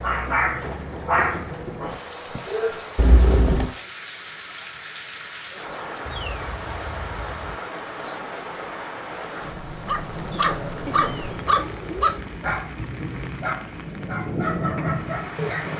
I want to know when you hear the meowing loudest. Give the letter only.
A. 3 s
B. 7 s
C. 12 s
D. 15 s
A.